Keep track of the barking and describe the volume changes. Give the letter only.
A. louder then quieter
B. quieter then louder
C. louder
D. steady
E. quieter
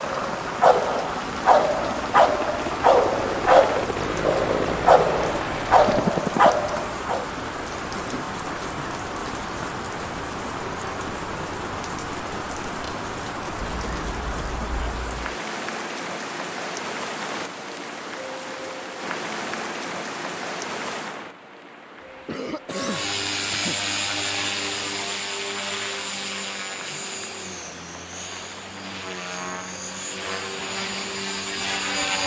D.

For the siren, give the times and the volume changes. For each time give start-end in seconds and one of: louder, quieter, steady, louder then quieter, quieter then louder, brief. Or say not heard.
not heard.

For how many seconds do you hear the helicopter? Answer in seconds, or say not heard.
16 s.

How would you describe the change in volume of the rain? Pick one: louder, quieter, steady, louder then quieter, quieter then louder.
quieter.